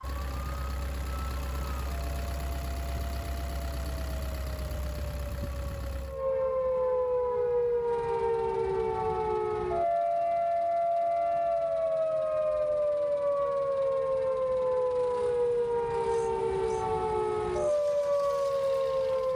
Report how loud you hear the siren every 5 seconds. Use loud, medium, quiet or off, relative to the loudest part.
quiet, loud, loud, loud.